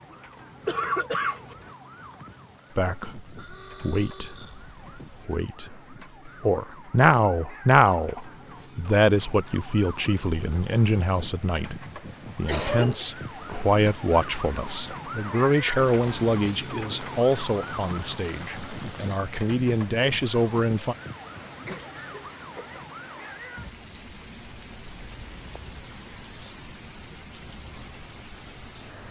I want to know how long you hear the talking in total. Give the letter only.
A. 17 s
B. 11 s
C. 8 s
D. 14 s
A.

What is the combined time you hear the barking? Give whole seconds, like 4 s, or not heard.
not heard.